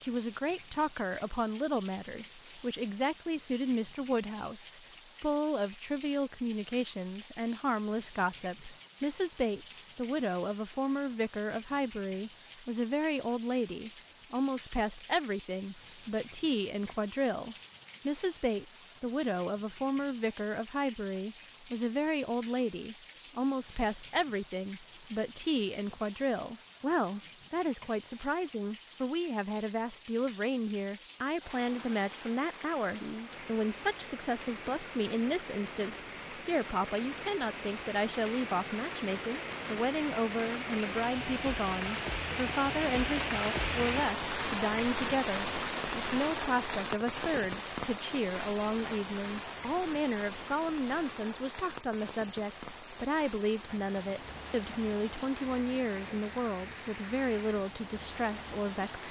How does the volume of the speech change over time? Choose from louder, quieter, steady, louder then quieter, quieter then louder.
steady.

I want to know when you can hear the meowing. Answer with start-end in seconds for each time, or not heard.
not heard.